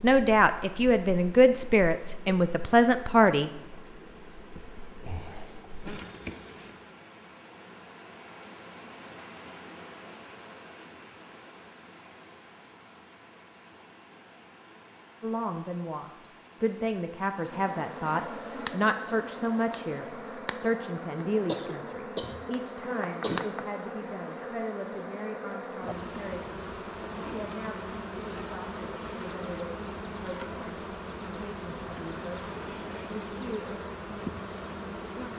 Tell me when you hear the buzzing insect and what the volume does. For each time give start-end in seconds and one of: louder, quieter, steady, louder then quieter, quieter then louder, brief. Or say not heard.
0.0-7.0 louder
17.4-35.3 steady.